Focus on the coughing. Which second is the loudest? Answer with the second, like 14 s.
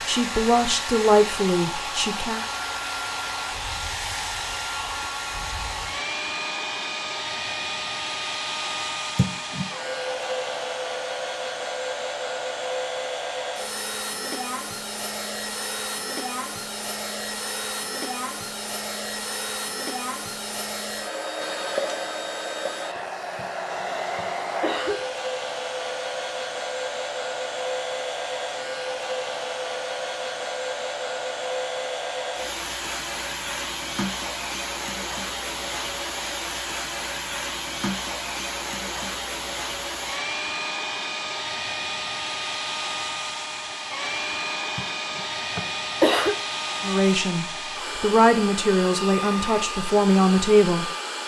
46 s.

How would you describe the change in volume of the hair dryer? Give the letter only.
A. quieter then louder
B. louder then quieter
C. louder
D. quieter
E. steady
E.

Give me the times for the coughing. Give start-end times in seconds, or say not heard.
9.2-9.7, 23.4-25.0, 44.8-46.4.